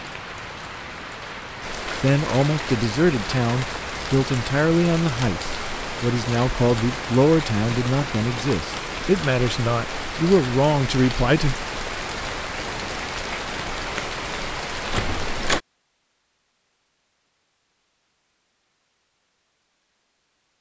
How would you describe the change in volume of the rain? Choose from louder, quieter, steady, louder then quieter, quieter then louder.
steady.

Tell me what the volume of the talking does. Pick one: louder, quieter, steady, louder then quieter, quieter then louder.
steady.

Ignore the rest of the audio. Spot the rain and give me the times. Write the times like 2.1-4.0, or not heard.
0.0-15.6.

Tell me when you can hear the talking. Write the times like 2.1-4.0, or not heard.
2.0-11.6.